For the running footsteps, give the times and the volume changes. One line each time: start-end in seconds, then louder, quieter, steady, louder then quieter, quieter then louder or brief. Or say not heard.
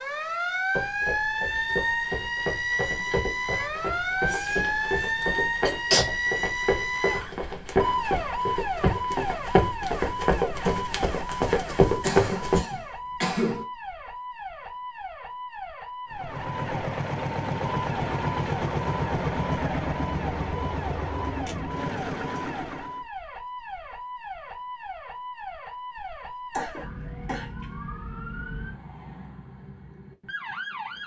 0.7-12.6 louder.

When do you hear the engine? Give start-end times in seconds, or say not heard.
16.1-23.1.